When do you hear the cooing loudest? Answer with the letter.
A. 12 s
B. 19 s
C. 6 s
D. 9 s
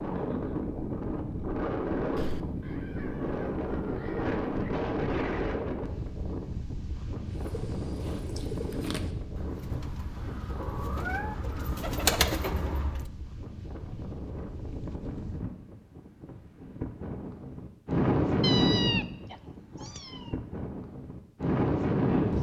A.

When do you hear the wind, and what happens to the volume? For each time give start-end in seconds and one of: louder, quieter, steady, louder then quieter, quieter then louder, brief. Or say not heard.
0.0-22.3 quieter then louder.